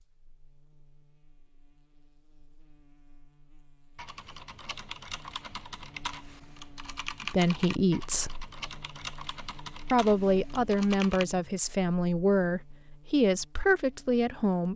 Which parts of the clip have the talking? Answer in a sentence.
The talking can be heard from 7.2 to 8.4 s and from 9.9 to 14.7 s.